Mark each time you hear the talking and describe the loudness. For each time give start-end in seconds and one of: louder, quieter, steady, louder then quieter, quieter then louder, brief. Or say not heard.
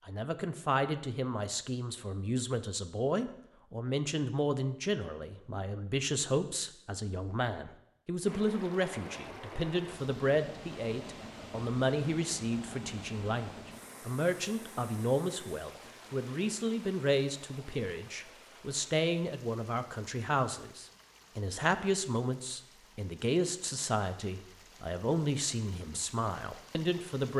0.1-27.3 steady.